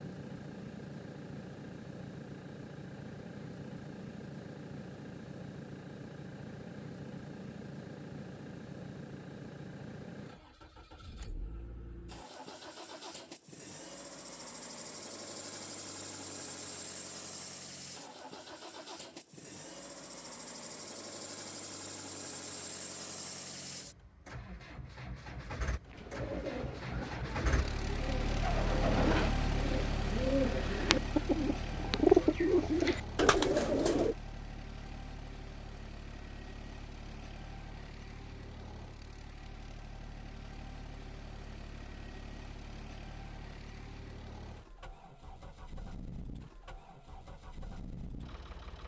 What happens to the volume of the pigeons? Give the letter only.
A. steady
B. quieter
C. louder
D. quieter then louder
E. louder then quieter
C.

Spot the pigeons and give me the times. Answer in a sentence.
You can hear the pigeons from 25.9 to 34.1 s.